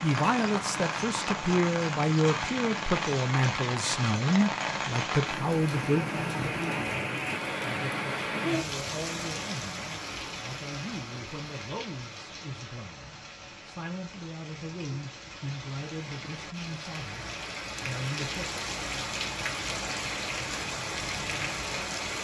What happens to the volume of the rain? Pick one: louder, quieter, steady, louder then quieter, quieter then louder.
quieter then louder.